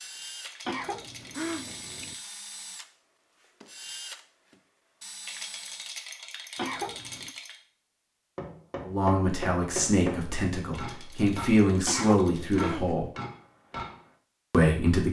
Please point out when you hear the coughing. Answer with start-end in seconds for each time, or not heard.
0.7-2.1, 6.5-7.3, 11.8-13.1.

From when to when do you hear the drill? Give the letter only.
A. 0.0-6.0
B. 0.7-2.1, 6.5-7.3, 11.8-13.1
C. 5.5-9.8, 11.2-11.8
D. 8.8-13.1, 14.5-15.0
A.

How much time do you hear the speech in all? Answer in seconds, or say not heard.
5 s.